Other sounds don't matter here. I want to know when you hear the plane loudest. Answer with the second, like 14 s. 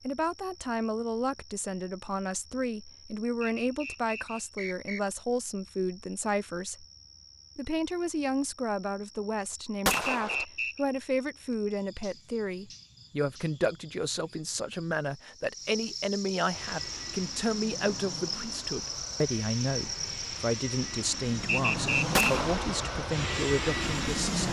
24 s.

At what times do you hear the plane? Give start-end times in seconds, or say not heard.
16.4-24.4.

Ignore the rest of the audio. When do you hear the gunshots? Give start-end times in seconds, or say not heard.
9.8-10.4, 22.1-22.8.